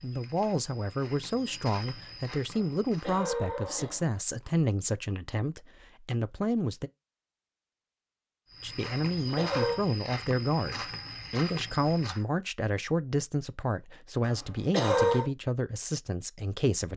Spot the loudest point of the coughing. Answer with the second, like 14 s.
15 s.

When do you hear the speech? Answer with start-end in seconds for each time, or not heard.
0.0-6.9, 8.6-16.9.